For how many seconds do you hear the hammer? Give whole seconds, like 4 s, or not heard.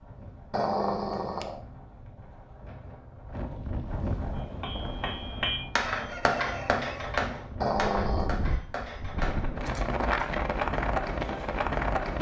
5 s.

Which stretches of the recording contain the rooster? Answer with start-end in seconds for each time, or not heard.
5.9-7.2.